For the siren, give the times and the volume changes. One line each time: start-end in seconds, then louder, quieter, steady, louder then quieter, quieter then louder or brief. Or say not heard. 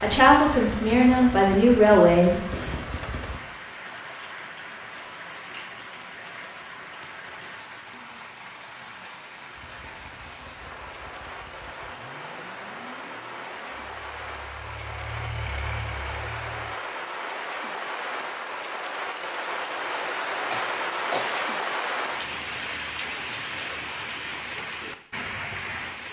not heard.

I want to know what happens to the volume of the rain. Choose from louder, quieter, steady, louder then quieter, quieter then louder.
louder.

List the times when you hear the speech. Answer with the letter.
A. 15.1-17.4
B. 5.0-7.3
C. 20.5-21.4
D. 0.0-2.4
D.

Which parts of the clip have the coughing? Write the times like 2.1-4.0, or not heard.
20.5-21.4.